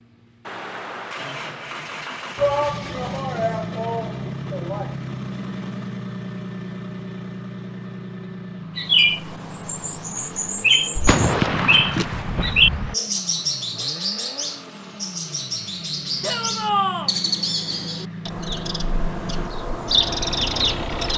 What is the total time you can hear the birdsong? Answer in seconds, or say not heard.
12 s.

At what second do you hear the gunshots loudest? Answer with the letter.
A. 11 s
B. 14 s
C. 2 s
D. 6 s
A.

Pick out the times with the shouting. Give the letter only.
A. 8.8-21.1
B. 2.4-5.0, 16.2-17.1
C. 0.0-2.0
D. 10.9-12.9
B.